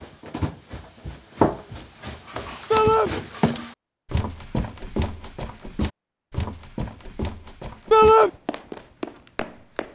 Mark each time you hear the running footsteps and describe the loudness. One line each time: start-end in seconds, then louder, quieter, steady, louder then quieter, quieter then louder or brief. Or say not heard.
0.0-9.9 quieter.